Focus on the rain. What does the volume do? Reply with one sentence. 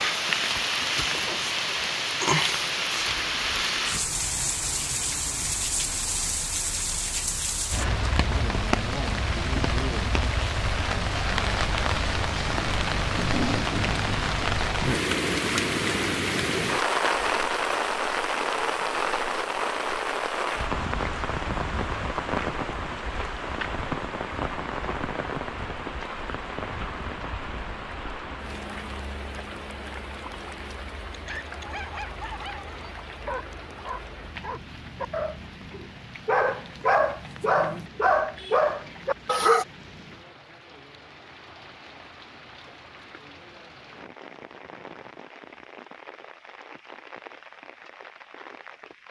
The loudness of the rain goes down.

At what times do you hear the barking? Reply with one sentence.
The barking can be heard from 31.1 to 39.6 s.